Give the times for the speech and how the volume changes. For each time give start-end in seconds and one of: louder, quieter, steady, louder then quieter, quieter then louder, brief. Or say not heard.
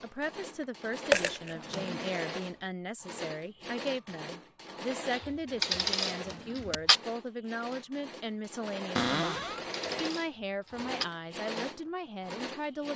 0.0-12.9 steady.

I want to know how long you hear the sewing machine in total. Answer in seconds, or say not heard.
13 s.